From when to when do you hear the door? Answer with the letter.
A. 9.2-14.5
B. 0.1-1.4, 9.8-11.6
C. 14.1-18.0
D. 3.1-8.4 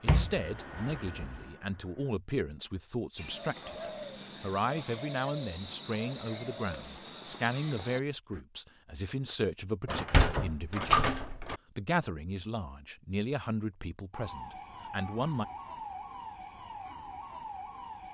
B.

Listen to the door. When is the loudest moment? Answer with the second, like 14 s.
11 s.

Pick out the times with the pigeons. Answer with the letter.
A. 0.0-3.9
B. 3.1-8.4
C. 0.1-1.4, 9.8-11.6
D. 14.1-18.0
B.